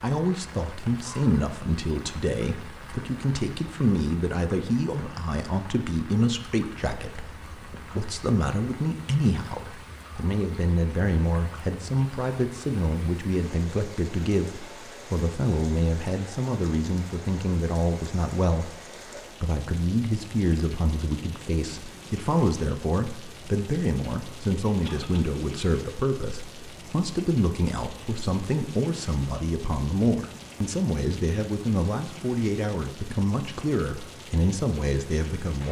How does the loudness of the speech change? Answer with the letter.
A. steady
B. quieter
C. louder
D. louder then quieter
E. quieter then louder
A.